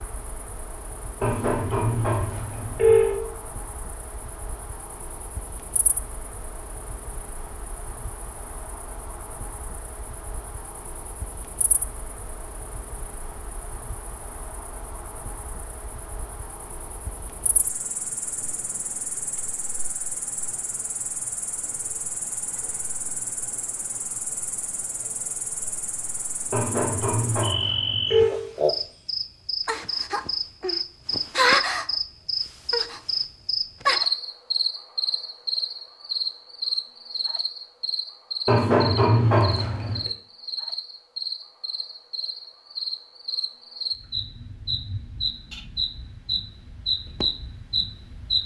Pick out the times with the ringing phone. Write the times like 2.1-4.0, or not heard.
1.2-3.2, 26.5-28.4, 38.5-40.0.